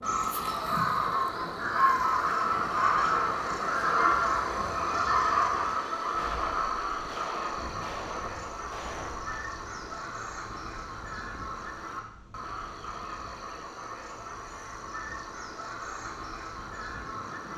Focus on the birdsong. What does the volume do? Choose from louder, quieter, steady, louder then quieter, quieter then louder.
quieter.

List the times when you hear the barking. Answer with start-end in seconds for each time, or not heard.
not heard.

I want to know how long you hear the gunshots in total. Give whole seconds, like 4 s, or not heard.
3 s.